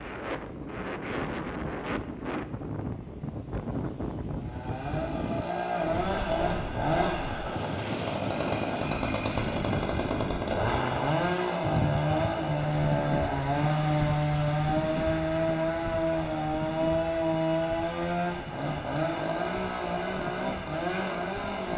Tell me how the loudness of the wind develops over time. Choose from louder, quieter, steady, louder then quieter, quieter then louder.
quieter.